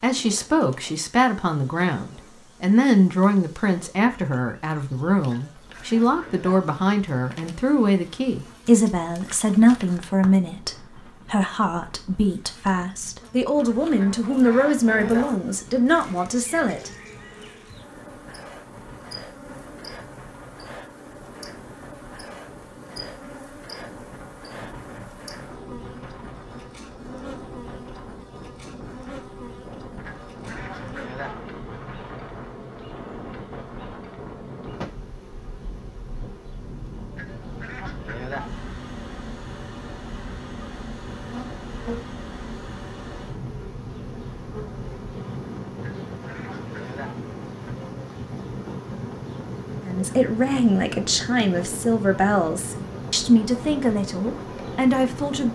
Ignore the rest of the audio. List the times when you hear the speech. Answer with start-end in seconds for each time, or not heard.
0.0-16.9, 49.8-55.5.